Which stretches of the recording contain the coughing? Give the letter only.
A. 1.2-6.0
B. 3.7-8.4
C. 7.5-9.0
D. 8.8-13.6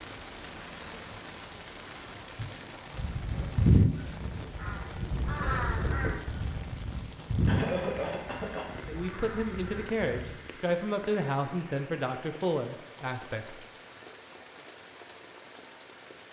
C.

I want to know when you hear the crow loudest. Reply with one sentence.
The volume of the crow peaks at 4 seconds.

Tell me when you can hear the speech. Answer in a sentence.
The speech can be heard from 8.8 to 13.6 s.